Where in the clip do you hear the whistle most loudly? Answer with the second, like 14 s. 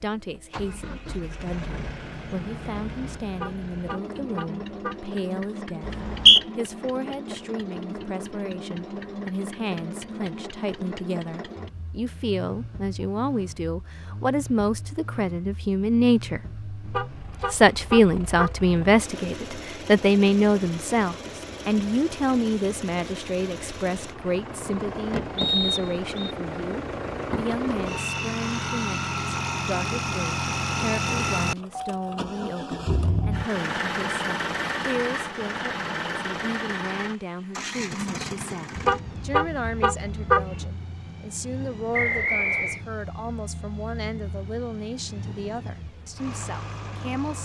6 s.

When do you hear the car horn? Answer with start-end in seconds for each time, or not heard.
3.3-5.0, 16.8-18.9, 38.8-40.6.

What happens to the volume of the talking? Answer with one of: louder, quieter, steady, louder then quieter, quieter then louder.
louder then quieter.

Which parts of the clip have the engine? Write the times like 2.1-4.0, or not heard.
0.0-47.4.